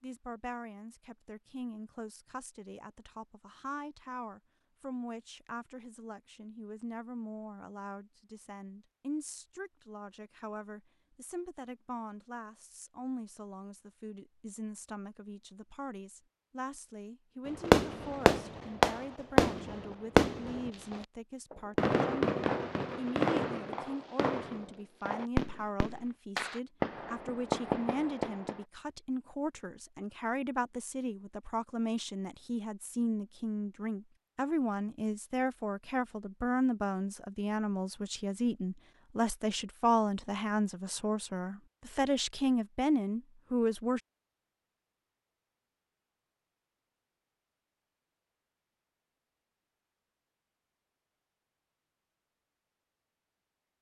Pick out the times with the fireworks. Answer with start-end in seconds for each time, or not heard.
17.6-28.6.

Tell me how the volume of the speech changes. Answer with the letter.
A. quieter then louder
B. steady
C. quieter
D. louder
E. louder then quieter
D.